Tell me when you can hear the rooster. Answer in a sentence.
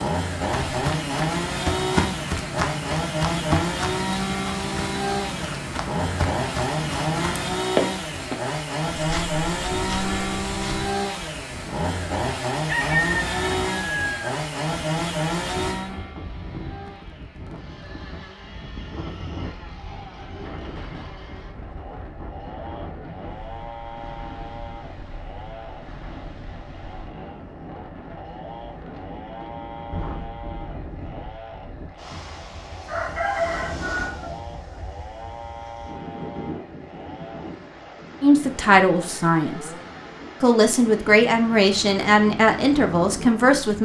You can hear the rooster from 12.7 to 14.3 s and from 32.9 to 34.4 s.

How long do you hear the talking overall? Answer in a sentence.
You can hear the talking for 5 seconds altogether.